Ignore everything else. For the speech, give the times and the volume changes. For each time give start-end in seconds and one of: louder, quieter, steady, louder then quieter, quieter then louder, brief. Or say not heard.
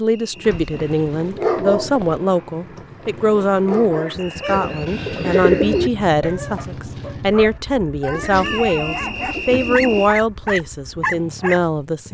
0.0-12.0 steady.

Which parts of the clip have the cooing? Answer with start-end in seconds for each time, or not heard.
0.5-2.2, 4.5-5.9, 8.1-10.2.